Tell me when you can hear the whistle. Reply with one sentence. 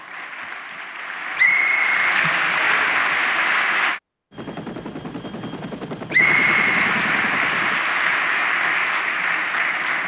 The whistle can be heard from 1.4 to 3.0 s and from 6.1 to 6.8 s.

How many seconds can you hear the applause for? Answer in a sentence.
The applause can be heard for 8 seconds in total.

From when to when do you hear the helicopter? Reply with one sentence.
You can hear the helicopter from 4.3 to 7.8 s.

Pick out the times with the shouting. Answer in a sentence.
You can't hear the shouting here.